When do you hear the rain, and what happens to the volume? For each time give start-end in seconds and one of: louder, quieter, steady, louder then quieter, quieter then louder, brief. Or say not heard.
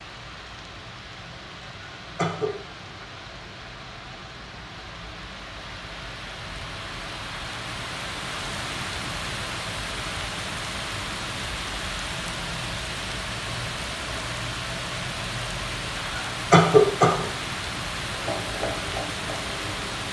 0.0-20.0 louder.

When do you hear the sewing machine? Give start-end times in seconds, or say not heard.
18.1-19.9.